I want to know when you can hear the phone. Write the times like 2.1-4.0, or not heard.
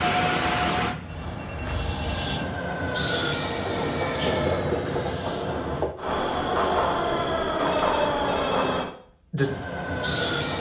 0.8-2.5, 7.6-8.9.